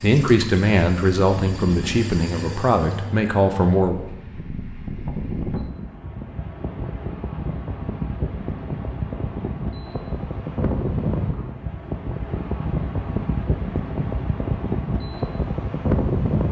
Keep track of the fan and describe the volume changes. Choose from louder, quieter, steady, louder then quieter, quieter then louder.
louder.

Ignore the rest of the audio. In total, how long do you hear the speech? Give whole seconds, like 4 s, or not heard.
4 s.